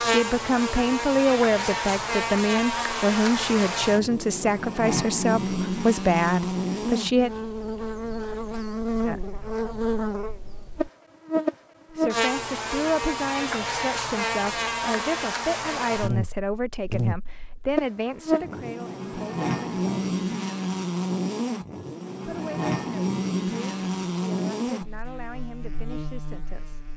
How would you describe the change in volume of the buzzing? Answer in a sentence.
The loudness of the buzzing stays about the same.